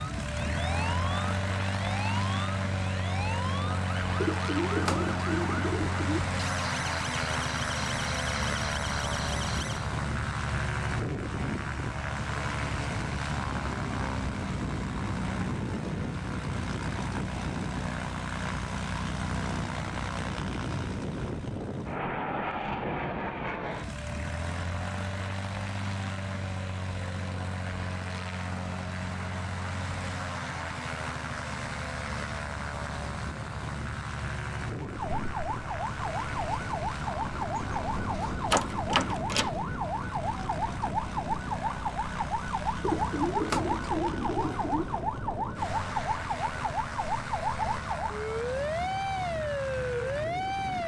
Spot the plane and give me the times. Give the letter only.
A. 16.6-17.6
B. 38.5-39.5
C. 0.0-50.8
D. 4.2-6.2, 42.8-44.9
C.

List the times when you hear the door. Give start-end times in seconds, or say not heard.
38.5-39.5.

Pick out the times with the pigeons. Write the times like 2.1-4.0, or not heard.
4.2-6.2, 42.8-44.9.